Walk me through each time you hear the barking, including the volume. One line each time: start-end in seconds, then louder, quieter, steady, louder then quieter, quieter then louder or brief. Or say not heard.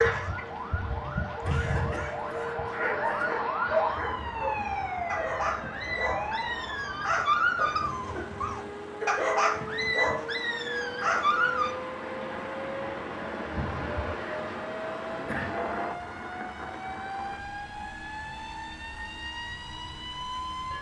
0.0-11.8 louder.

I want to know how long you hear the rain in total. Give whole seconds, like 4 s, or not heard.
21 s.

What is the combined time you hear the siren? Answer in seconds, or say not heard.
21 s.